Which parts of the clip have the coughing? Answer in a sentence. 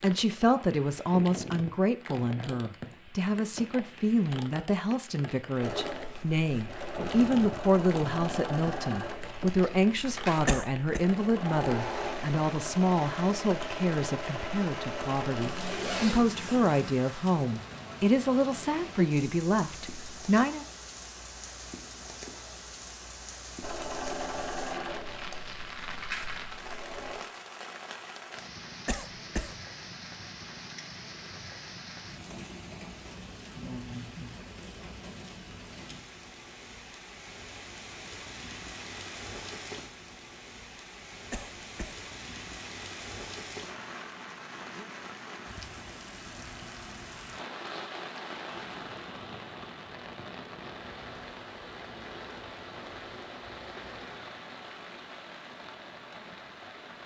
You can hear the coughing from 10.4 to 11.0 s, from 28.9 to 29.6 s and from 41.3 to 42.0 s.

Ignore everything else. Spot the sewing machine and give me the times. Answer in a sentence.
You can hear the sewing machine from 5.6 to 16.2 s and from 23.6 to 27.2 s.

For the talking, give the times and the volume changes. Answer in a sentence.
You can hear the talking from 0.0 to 20.6 s, at a steady volume.